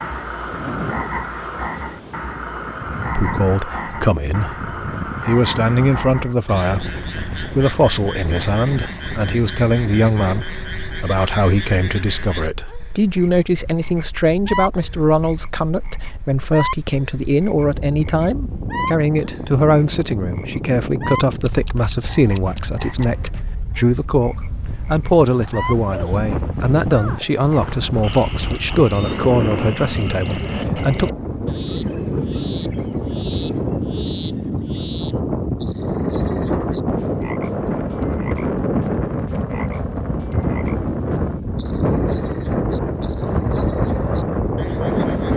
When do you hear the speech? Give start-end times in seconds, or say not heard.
3.0-31.1.